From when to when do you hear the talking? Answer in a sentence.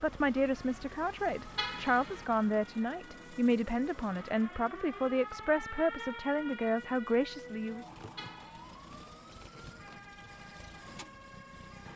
The talking can be heard from 0.0 to 7.8 s.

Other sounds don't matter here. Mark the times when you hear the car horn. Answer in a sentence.
You can hear the car horn from 1.6 to 2.2 s and from 8.2 to 8.8 s.